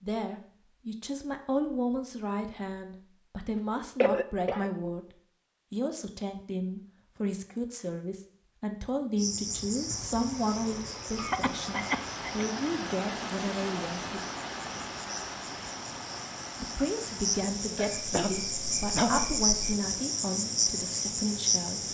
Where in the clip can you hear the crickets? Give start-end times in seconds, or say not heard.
9.2-21.9.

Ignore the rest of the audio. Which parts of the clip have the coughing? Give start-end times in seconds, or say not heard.
4.0-4.7, 11.2-12.4, 17.8-19.6.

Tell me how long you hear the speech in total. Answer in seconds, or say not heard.
19 s.